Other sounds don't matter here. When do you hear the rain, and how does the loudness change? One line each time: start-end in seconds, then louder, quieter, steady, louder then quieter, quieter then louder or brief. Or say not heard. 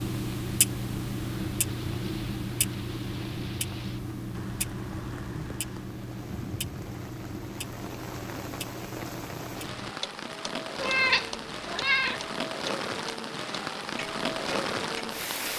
0.0-15.5 louder.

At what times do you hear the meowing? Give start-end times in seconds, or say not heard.
10.8-12.2.